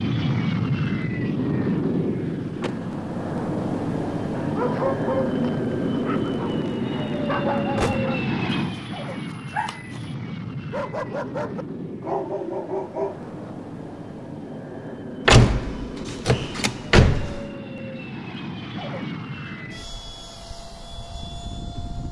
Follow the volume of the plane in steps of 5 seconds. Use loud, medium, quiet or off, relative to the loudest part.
loud, loud, medium, medium, quiet.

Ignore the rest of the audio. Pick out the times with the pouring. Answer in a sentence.
You can't hear the pouring here.